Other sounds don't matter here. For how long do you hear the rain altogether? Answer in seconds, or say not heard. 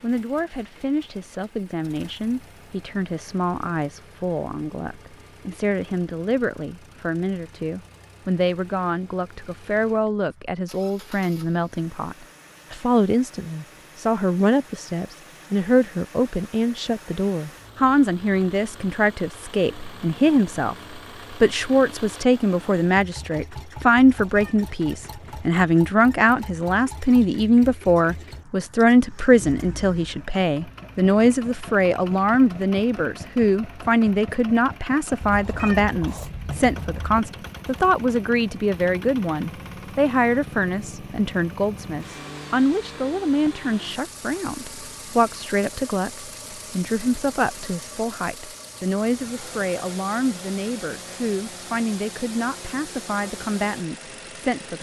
not heard.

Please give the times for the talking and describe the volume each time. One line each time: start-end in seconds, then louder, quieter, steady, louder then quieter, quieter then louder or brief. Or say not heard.
0.0-54.7 louder then quieter.